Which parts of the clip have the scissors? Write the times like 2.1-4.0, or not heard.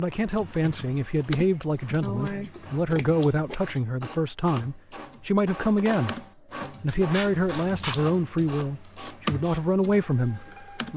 2.0-3.8, 6.8-8.1.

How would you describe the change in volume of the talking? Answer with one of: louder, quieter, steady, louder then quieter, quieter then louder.
steady.